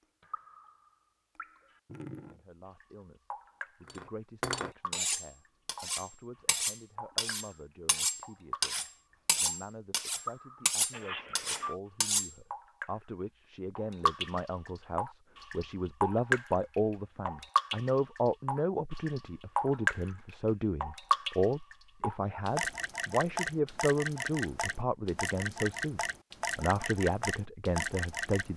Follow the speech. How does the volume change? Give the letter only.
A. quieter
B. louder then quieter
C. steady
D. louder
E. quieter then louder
D.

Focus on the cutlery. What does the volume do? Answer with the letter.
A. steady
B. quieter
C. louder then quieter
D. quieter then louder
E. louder
A.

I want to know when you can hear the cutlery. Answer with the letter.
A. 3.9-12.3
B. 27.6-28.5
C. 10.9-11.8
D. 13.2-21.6
A.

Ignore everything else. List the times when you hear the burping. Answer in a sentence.
The burping can be heard from 10.9 to 11.8 s.